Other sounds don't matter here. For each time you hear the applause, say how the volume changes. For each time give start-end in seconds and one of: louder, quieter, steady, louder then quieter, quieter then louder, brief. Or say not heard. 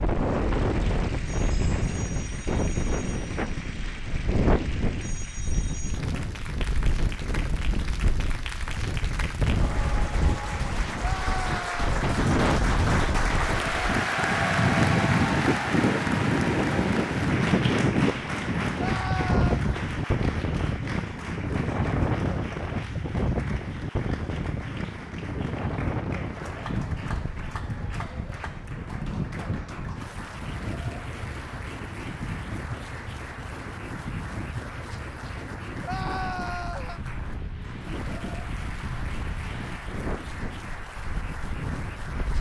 0.0-42.3 louder then quieter.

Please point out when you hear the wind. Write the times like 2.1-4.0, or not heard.
0.0-42.3.